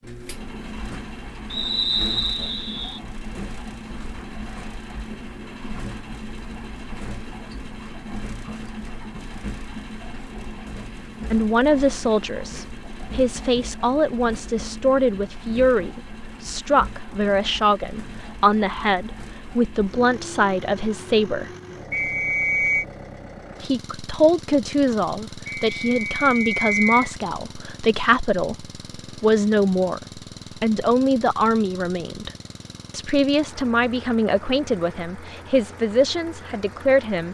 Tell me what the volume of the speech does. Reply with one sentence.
The volume of the speech stays about the same.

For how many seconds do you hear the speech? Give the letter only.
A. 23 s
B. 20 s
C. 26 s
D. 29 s
A.